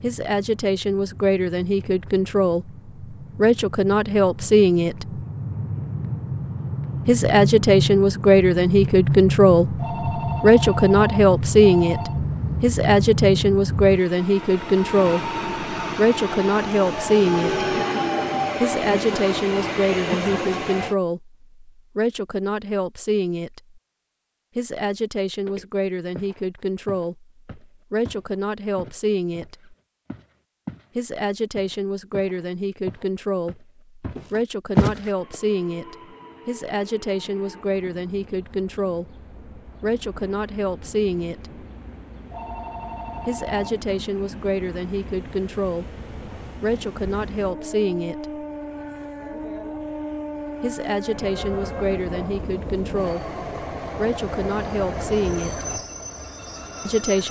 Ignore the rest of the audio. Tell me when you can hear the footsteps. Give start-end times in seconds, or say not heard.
25.4-30.9, 31.6-35.4.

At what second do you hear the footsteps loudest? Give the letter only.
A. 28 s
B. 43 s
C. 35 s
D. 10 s
C.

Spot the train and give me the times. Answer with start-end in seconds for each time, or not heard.
0.0-20.9, 35.1-57.2.